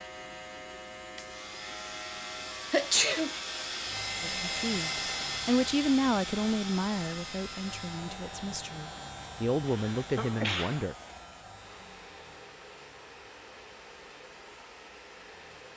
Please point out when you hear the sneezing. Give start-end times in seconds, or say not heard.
2.7-3.3, 9.7-10.8.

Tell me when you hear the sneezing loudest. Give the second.
3 s.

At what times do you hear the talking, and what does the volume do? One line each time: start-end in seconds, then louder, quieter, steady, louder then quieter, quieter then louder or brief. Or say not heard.
4.2-10.9 quieter then louder.